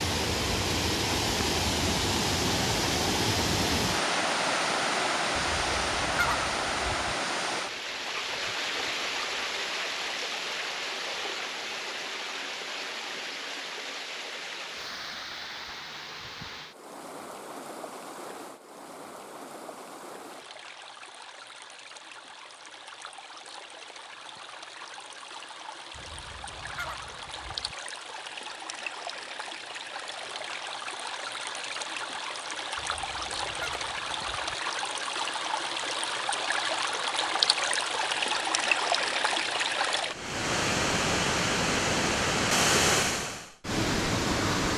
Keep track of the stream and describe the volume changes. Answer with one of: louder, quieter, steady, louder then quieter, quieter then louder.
quieter then louder.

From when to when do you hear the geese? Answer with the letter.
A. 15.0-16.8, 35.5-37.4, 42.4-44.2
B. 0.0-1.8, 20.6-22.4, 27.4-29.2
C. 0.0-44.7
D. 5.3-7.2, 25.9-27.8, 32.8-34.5
D.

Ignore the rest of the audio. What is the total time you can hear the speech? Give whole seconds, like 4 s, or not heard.
not heard.